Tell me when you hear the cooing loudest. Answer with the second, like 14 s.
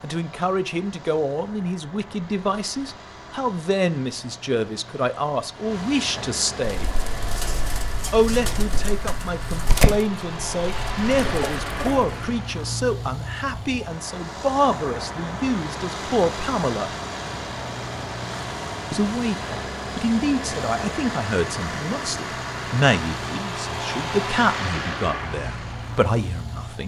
10 s.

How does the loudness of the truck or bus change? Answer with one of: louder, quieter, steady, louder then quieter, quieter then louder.
louder.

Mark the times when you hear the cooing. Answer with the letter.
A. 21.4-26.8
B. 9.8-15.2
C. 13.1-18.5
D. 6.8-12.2
D.